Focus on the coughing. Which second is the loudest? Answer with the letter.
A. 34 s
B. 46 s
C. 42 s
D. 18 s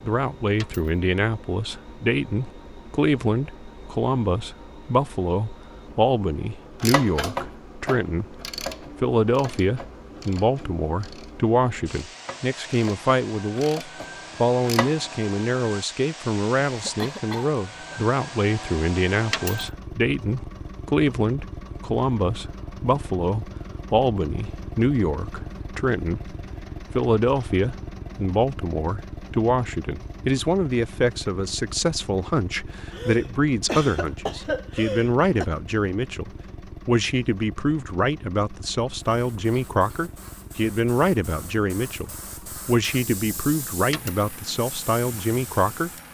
A.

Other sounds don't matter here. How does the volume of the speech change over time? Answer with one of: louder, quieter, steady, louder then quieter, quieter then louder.
steady.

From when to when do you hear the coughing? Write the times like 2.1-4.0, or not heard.
16.6-18.0, 32.9-35.5.